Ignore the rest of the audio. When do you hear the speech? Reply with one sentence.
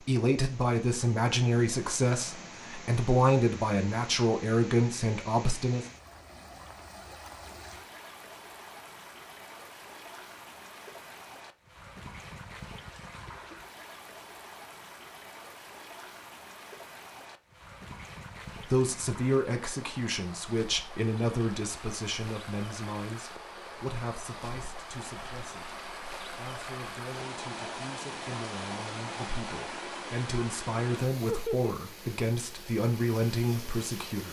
The speech can be heard from 0.1 to 5.8 s and from 18.6 to 34.2 s.